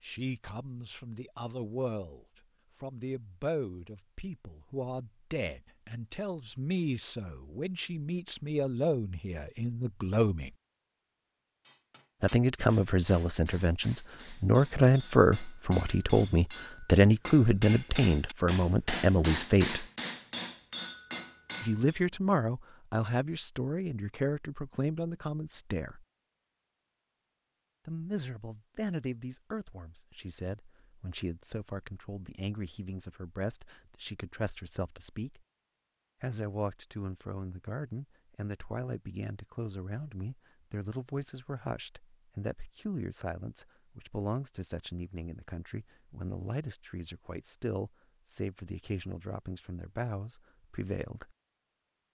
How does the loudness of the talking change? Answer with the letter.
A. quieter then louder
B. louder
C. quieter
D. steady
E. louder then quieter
E.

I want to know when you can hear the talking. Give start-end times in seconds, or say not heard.
0.0-10.5, 12.2-19.9, 21.6-26.1, 27.9-35.4, 36.2-51.3.